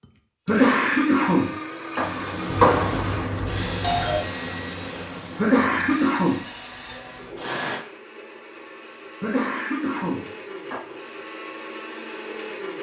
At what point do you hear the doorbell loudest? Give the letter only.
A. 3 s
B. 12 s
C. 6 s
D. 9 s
A.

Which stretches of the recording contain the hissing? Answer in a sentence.
You can hear the hissing from 1.9 to 7.8 s.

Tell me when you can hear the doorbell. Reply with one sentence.
You can hear the doorbell from 2.5 to 4.2 s.